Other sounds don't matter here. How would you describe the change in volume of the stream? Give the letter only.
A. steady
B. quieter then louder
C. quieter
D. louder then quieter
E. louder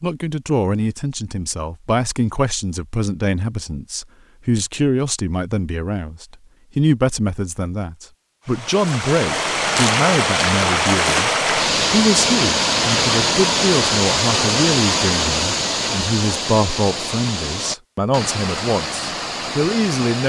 C.